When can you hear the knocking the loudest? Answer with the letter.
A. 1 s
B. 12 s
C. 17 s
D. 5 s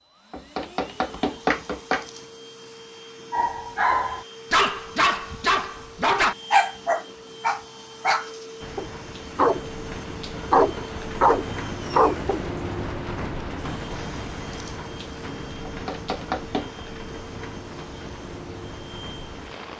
A.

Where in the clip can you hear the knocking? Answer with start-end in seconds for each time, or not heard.
0.3-2.0, 15.7-16.8.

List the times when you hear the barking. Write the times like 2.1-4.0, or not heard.
3.3-9.7, 10.5-12.5.